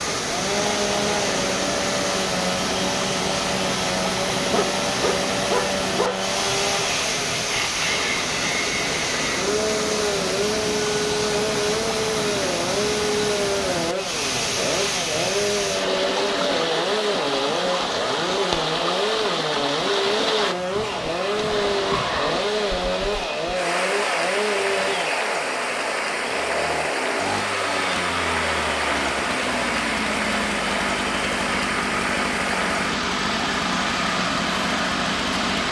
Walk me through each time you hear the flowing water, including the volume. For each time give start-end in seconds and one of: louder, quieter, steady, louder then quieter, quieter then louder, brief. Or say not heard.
0.0-35.6 steady.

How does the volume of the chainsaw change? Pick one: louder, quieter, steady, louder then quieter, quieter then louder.
steady.